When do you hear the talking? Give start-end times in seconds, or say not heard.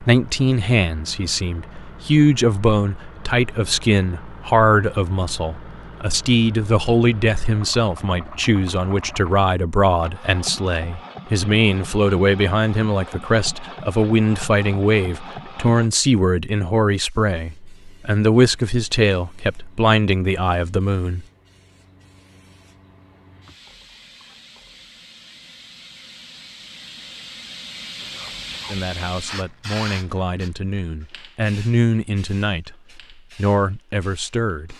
0.0-21.2, 28.6-34.7.